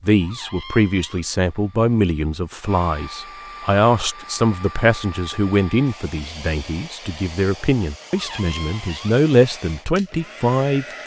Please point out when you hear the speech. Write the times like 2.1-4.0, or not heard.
0.0-11.0.